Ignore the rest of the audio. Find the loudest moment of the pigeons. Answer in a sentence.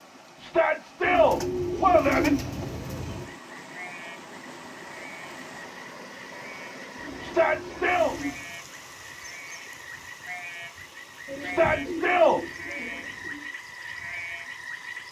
The volume of the pigeons peaks at 2 seconds.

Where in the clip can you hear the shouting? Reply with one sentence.
The shouting can be heard from 0.4 to 2.3 s, from 7.2 to 8.2 s and from 11.4 to 12.4 s.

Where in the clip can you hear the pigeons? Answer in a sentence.
The pigeons can be heard from 1.0 to 3.3 s, from 7.0 to 8.5 s and from 11.2 to 13.4 s.